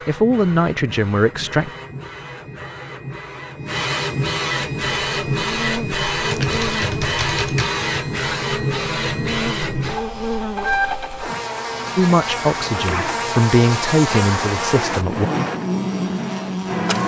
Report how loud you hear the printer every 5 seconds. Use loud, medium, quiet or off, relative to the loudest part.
medium, loud, medium, medium.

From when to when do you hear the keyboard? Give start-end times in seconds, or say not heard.
6.2-7.8.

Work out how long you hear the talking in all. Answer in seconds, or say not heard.
5 s.